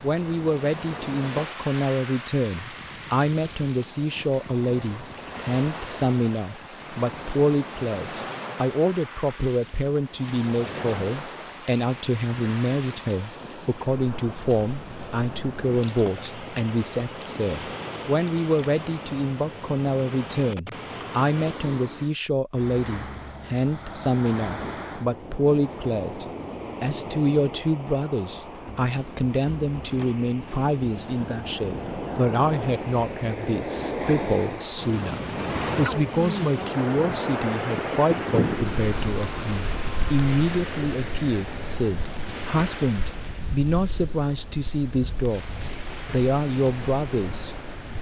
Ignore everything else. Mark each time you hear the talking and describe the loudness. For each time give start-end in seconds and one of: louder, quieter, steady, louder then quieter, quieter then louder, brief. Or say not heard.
0.0-47.7 steady.